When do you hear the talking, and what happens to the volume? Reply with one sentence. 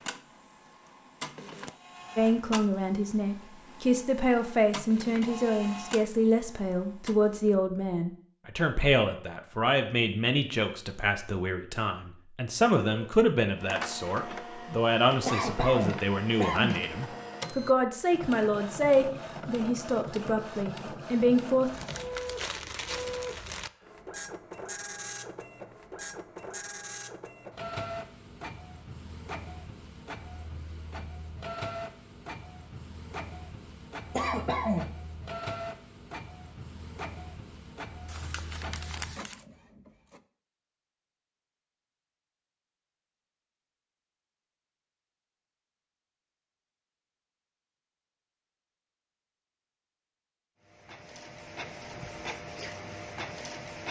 The talking can be heard from 2.1 to 21.7 s, at a steady volume.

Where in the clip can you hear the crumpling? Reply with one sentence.
The crumpling can be heard from 21.7 to 23.7 s and from 38.0 to 39.4 s.